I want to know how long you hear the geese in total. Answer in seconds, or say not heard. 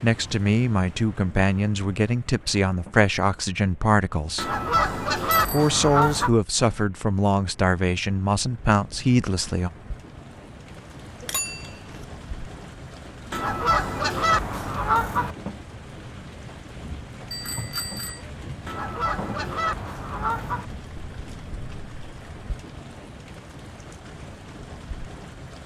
6 s.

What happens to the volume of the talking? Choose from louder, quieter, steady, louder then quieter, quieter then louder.
steady.